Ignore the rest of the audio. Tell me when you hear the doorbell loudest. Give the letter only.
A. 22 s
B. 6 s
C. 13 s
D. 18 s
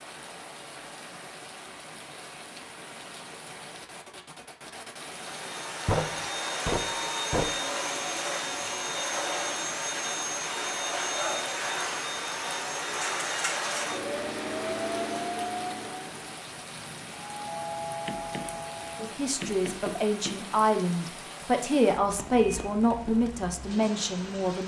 D.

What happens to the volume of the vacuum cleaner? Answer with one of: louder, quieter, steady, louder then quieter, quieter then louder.
steady.